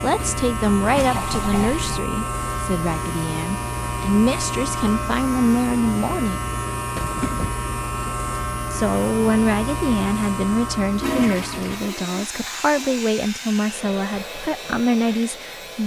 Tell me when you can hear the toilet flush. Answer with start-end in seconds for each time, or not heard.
0.1-2.0, 7.0-7.5, 10.9-13.1.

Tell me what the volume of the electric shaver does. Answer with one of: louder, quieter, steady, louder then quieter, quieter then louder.
quieter.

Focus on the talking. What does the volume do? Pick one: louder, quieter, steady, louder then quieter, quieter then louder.
steady.